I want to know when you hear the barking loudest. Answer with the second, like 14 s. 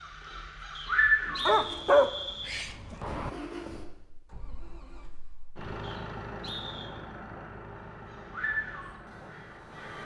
2 s.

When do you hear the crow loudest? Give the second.
1 s.